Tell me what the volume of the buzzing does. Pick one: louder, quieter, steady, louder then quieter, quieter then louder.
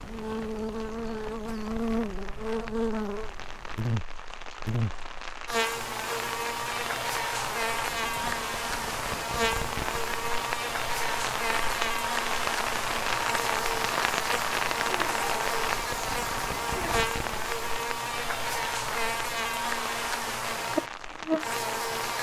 steady.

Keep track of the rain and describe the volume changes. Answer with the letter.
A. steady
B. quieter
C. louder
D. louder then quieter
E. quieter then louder
D.